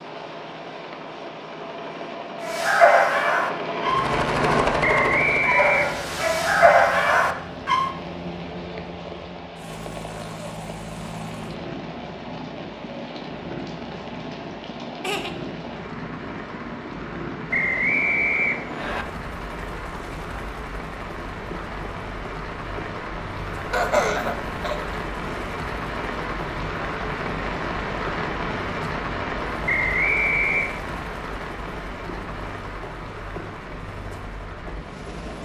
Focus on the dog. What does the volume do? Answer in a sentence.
The loudness of the dog goes down, then up.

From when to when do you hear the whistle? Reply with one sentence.
You can hear the whistle from 4.8 to 6.2 s, from 17.5 to 19.1 s and from 29.6 to 30.7 s.